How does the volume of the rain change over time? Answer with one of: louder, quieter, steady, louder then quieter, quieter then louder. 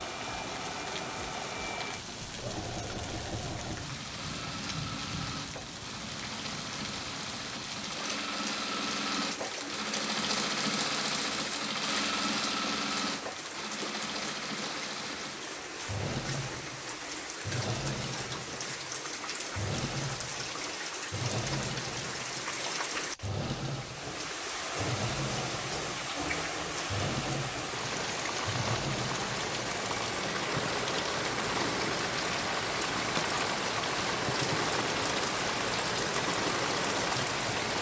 louder.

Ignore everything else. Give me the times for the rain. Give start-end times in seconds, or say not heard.
0.0-37.7.